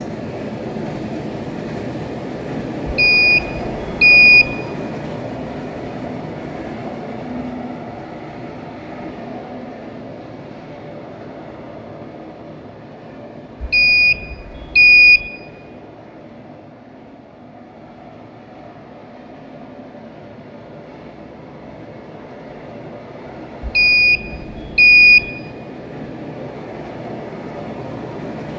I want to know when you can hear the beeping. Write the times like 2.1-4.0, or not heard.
2.9-4.5, 13.6-15.2, 23.6-25.2.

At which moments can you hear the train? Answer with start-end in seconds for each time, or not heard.
0.0-28.5.